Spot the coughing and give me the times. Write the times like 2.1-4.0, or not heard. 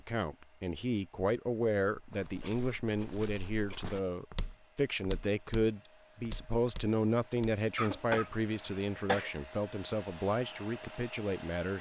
2.4-4.0, 7.8-9.3.